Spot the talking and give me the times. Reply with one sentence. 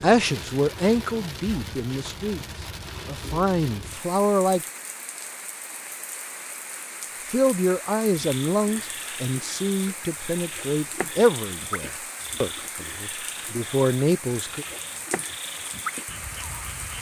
The talking can be heard from 0.0 to 4.7 s and from 7.2 to 14.7 s.